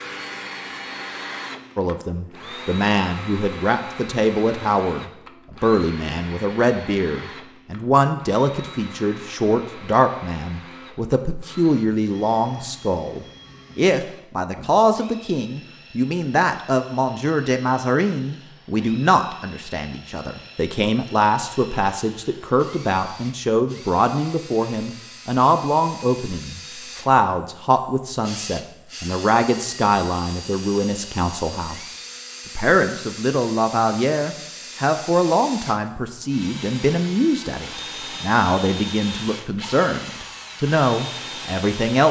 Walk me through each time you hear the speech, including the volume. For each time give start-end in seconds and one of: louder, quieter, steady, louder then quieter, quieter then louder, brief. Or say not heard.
1.8-31.9 steady
32.5-42.0 steady.